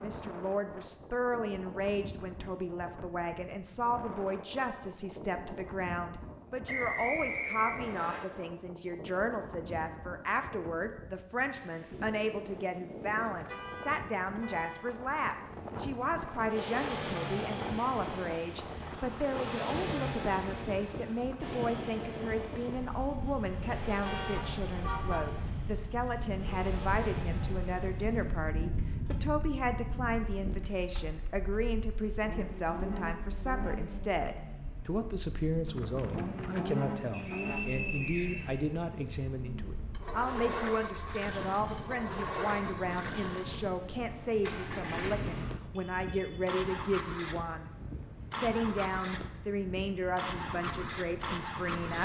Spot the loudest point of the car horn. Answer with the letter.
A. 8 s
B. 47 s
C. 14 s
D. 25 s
D.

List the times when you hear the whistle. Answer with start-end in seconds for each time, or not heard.
6.7-8.2, 37.1-39.1.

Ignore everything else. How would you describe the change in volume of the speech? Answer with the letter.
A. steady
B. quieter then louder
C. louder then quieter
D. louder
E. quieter
A.